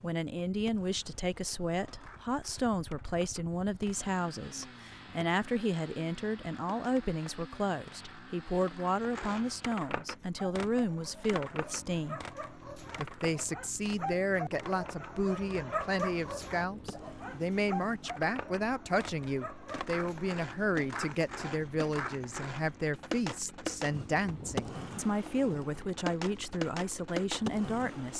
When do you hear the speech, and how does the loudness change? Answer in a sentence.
You can hear the speech from 0.0 to 12.3 s, at a steady volume; and from 12.9 to 28.1 s, at a steady volume.